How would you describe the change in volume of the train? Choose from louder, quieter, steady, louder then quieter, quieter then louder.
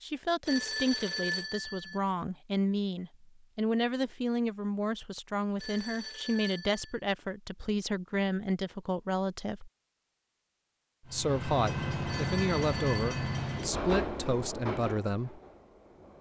quieter.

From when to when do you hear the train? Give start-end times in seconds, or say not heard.
11.1-16.1.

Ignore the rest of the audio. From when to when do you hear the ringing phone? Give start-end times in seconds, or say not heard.
0.5-2.0, 5.5-7.0, 12.1-13.3.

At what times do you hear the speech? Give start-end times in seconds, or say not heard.
0.0-9.7, 11.1-15.4.